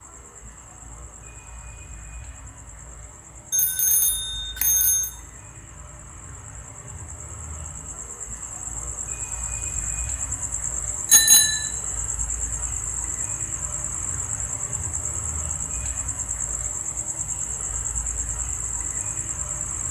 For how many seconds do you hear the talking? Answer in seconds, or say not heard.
not heard.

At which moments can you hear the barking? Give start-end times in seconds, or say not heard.
not heard.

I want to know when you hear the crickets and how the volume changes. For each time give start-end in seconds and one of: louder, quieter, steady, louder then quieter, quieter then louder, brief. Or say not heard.
0.0-19.8 louder.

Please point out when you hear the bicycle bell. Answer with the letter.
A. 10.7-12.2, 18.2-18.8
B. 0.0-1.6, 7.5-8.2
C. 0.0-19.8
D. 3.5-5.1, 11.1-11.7
D.